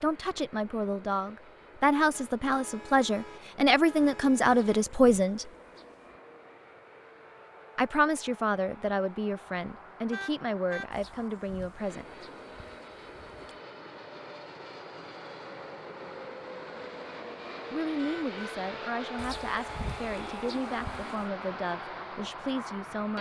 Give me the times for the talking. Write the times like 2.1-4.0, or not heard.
0.0-5.5, 7.8-12.2, 17.7-23.1.